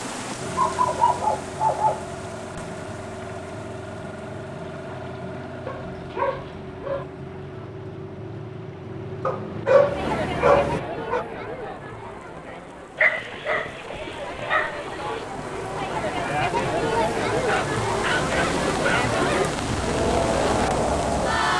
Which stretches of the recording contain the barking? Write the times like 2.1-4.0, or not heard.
0.6-2.0, 5.7-7.0, 9.2-11.2, 12.9-15.2, 17.4-19.4.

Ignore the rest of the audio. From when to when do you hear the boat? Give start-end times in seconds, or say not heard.
0.0-10.8, 18.1-21.5.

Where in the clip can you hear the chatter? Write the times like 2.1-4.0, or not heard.
9.9-21.5.